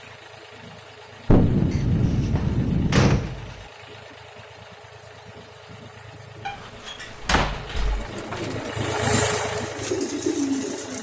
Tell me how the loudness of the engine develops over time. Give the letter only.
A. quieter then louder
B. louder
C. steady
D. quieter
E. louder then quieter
B.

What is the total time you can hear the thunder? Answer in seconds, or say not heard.
2 s.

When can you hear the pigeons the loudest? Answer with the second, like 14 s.
10 s.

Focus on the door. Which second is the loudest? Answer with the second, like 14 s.
3 s.